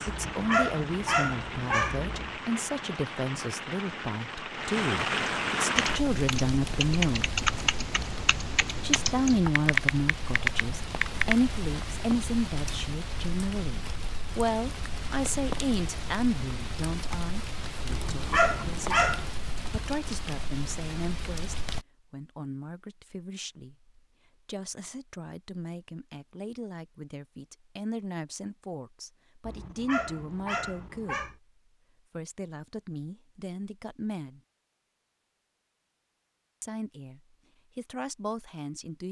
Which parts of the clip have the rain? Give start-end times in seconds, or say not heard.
0.0-21.9.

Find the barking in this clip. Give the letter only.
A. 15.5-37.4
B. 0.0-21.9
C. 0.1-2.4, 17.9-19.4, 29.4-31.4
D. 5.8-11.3
C.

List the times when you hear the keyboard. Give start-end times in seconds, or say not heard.
5.8-11.3.